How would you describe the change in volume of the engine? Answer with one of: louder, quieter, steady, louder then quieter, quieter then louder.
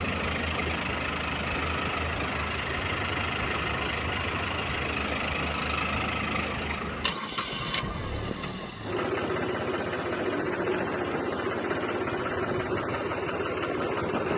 steady.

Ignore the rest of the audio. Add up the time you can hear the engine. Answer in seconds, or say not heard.
14 s.